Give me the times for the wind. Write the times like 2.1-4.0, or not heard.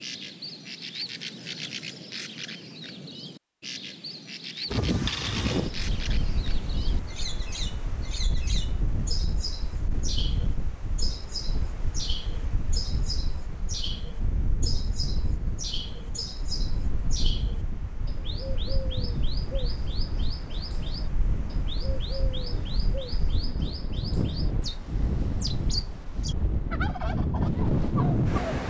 4.7-28.6.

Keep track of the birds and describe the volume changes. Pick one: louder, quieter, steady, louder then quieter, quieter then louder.
steady.